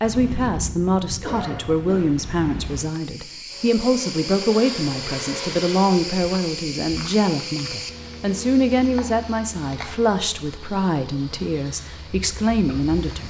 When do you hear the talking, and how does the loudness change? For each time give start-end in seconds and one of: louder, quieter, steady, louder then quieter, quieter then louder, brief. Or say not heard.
0.0-13.2 steady.